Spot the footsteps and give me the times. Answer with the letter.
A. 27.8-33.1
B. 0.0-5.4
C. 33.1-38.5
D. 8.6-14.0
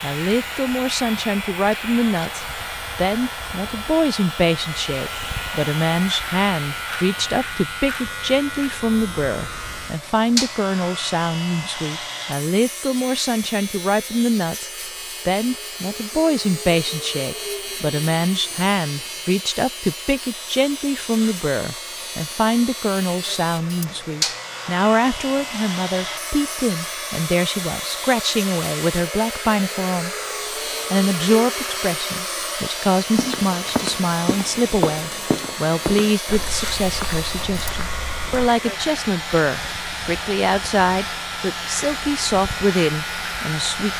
C.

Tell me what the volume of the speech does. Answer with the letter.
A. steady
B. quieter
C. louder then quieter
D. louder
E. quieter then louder
A.